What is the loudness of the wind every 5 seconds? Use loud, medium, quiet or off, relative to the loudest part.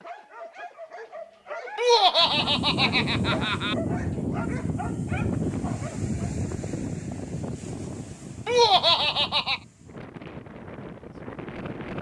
loud, loud, medium.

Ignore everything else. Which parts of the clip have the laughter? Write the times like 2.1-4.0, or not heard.
1.8-3.8, 8.4-9.6.